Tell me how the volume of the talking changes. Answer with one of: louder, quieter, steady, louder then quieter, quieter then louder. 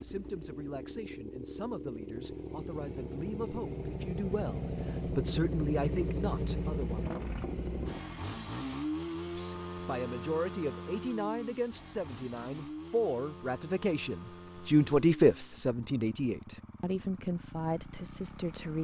louder then quieter.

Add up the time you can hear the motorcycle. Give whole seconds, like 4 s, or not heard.
19 s.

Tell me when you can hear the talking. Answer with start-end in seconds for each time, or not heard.
0.0-7.0, 9.2-18.7.